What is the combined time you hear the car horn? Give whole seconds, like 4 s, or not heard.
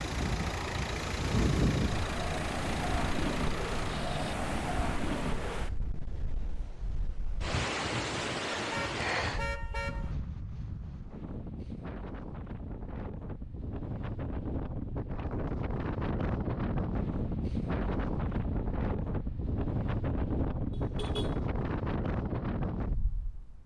2 s.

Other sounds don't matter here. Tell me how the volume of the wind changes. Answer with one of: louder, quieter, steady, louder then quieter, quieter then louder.
quieter then louder.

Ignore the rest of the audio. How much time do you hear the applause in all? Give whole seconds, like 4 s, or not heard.
not heard.